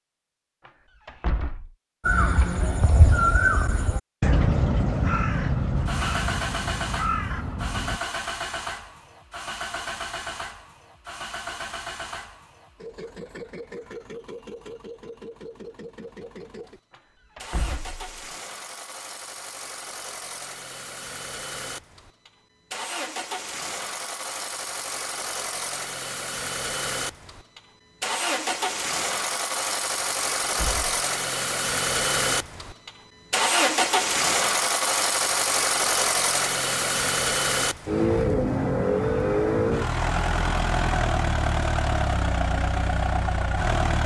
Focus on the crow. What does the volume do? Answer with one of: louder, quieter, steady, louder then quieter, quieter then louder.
quieter.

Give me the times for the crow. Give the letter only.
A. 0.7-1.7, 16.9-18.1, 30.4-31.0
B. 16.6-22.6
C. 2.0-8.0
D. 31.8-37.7
C.